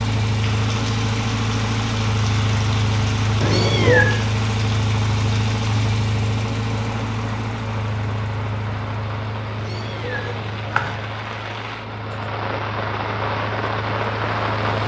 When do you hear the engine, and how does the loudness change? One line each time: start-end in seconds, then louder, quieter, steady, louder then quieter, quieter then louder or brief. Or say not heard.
0.0-14.8 quieter.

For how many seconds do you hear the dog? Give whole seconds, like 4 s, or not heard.
not heard.